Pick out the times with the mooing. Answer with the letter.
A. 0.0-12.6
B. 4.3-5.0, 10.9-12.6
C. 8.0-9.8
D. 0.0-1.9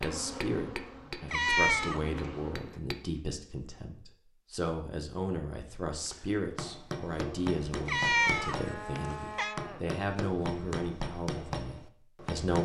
C.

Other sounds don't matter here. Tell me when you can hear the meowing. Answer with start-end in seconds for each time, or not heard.
1.3-2.0, 7.8-9.6.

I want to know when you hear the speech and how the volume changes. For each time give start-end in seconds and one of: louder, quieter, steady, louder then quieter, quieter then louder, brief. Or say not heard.
0.0-12.6 steady.